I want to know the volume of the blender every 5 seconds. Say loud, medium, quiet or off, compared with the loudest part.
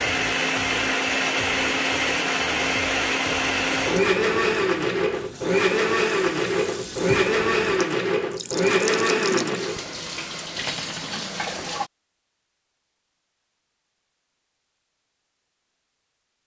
loud, loud, off, off.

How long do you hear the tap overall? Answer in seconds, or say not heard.
8 s.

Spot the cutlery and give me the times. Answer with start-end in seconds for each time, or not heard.
10.7-11.3.